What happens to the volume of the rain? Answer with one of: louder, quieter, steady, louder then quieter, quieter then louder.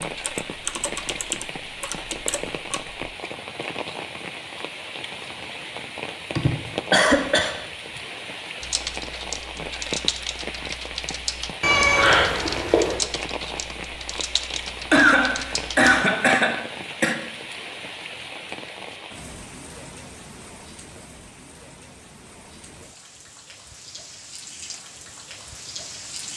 quieter.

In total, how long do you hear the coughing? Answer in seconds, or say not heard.
4 s.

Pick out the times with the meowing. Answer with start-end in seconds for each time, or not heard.
11.6-13.0.